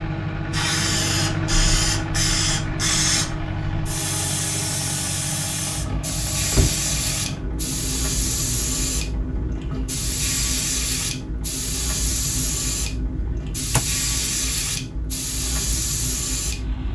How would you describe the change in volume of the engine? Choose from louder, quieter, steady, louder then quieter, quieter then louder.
quieter.